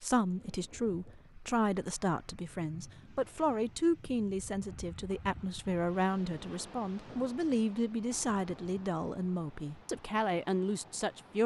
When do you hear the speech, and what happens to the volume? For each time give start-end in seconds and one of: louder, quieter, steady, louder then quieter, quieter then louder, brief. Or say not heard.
0.0-11.4 steady.